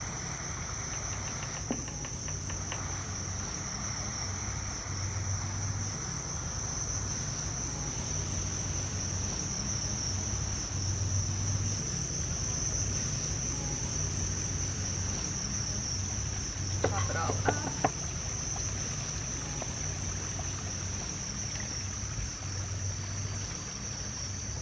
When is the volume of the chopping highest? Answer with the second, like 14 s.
17 s.